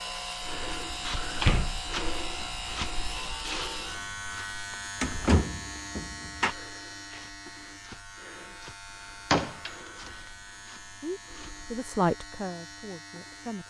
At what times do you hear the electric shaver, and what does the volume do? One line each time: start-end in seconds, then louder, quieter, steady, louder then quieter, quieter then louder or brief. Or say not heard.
0.0-13.6 quieter.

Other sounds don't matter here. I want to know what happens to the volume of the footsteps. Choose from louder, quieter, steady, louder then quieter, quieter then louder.
quieter.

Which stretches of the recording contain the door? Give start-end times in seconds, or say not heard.
1.2-2.6, 5.0-6.5, 9.3-10.1.